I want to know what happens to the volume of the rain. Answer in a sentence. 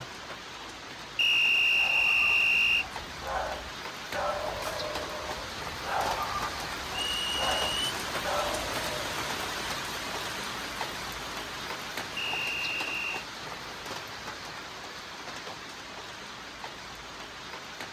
The volume of the rain goes up, then down.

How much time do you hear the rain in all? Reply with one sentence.
The rain can be heard for 18 seconds in total.